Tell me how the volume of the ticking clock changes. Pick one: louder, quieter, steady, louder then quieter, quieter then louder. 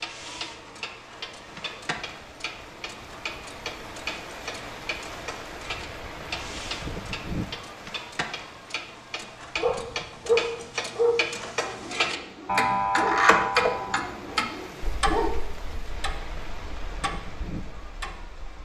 louder then quieter.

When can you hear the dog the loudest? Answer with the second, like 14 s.
10 s.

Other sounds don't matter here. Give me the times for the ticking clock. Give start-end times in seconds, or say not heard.
0.0-18.5.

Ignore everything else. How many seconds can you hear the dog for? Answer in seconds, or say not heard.
6 s.